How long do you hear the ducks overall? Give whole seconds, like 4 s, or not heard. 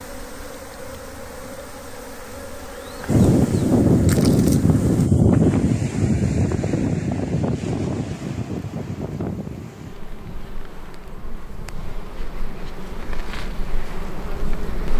not heard.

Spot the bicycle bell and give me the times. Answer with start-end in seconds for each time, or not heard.
not heard.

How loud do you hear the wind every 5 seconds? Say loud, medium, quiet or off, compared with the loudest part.
loud, medium, quiet.